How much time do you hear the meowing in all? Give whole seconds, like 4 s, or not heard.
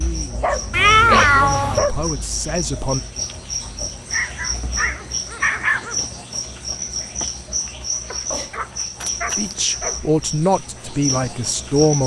2 s.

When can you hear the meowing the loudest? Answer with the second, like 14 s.
1 s.